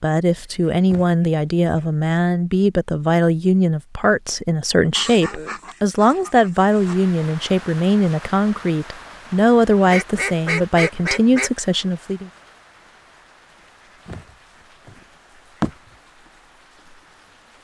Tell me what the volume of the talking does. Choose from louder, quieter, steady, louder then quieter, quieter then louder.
steady.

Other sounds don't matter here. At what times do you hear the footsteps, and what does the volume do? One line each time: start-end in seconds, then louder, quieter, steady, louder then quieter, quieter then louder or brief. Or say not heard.
not heard.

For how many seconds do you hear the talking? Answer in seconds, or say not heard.
12 s.